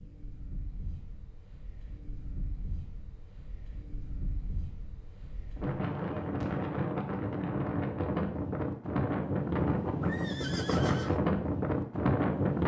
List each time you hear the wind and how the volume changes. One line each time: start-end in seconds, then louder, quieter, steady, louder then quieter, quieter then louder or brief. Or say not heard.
0.0-12.6 louder.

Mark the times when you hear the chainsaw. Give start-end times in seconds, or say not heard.
not heard.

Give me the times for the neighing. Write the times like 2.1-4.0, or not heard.
10.0-11.2.